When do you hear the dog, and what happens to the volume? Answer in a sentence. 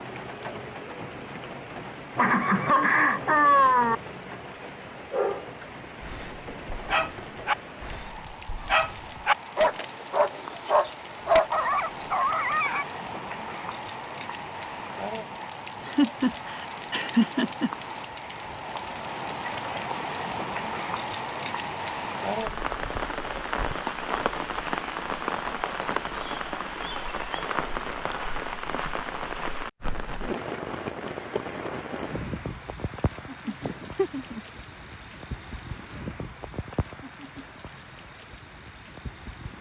The dog can be heard from 5.0 to 12.8 s, getting louder.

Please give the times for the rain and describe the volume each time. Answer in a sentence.
The rain can be heard from 0.0 to 39.5 s, getting louder then quieter.